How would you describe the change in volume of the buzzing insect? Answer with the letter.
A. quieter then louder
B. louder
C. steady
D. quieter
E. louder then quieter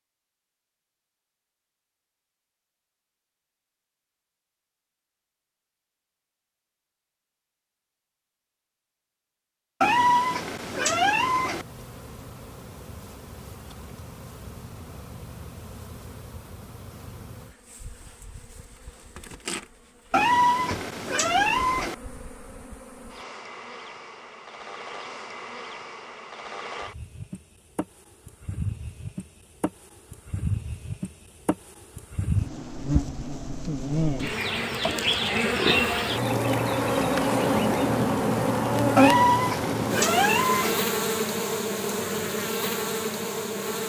B.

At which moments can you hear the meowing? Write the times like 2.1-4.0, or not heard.
9.8-11.7, 20.1-21.9, 39.0-40.8.